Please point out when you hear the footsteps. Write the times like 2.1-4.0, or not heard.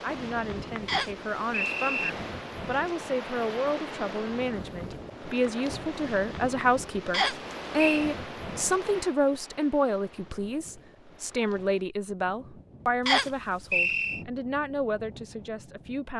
not heard.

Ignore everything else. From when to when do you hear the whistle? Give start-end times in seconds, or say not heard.
0.8-2.1, 7.1-8.1, 13.1-14.2.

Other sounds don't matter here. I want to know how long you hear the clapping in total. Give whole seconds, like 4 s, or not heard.
not heard.